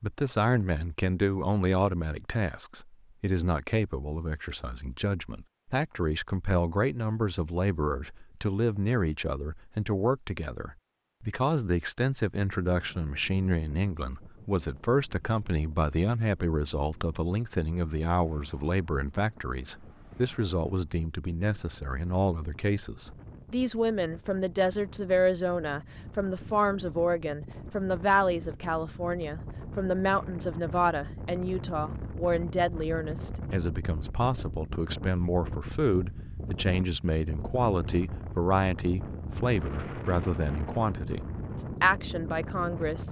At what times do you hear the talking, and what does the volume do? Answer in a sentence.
The talking can be heard from 0.0 to 43.0 s, at a steady volume.